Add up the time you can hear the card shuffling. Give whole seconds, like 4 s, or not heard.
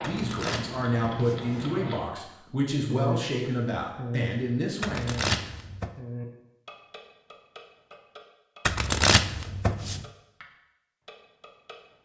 4 s.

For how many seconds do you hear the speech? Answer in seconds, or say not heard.
5 s.